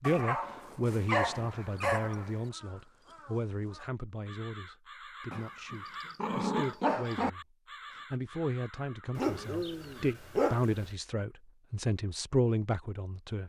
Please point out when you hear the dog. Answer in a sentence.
You can hear the dog from 0.0 to 2.5 s, from 5.3 to 7.3 s and from 9.2 to 10.9 s.